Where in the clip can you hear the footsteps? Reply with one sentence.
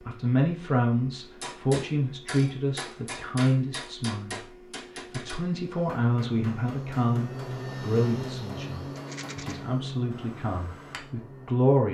You can't hear the footsteps here.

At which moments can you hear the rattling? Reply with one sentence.
You can hear the rattling from 8.9 to 9.6 s.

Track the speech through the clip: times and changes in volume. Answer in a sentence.
The speech can be heard from 0.0 to 11.8 s, getting quieter.